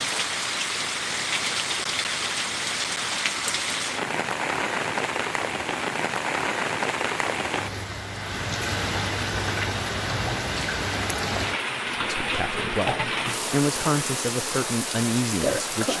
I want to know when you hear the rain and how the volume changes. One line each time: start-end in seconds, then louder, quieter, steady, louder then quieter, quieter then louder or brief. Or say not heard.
0.0-15.9 steady.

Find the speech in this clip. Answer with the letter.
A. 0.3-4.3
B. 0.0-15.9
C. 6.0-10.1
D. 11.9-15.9
D.